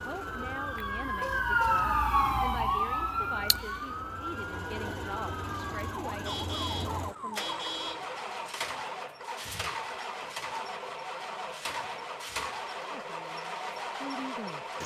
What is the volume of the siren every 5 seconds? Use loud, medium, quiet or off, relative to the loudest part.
loud, medium, off.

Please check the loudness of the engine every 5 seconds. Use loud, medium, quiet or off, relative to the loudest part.
medium, loud, loud.